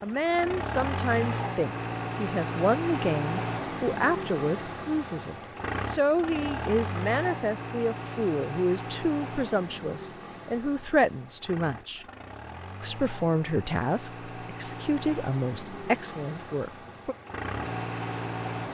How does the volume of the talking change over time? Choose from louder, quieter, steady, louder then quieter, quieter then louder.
steady.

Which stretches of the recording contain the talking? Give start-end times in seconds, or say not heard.
0.0-12.1, 12.8-17.1.